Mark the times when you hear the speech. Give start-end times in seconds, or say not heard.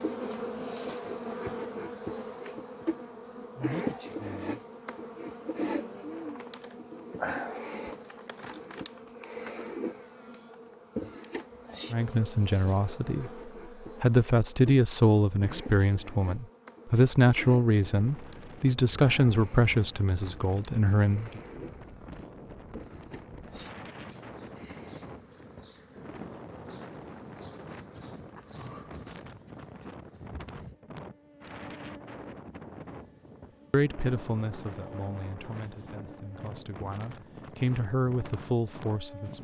11.9-13.3, 14.0-21.4, 33.7-39.3.